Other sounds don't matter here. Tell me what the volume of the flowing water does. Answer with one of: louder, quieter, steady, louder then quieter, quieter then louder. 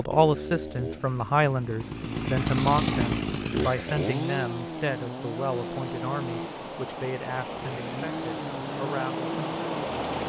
louder.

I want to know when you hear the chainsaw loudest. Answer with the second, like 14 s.
3 s.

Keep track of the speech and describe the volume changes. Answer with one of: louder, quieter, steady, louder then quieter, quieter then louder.
quieter.